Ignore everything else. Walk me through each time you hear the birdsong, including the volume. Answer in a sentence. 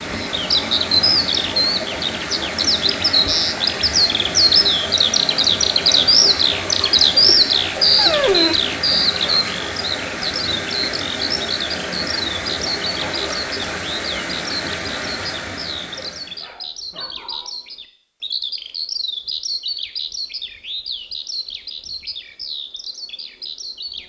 The birdsong can be heard from 0.1 to 24.0 s, getting quieter.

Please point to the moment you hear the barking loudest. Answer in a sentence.
The volume of the barking peaks at 8 seconds.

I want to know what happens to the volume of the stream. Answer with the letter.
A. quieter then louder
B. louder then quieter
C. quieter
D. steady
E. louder
D.